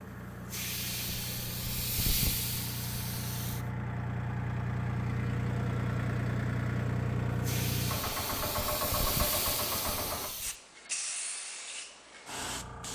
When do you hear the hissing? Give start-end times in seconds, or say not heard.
0.1-3.7, 7.3-12.9.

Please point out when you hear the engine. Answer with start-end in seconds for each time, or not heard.
0.0-10.3.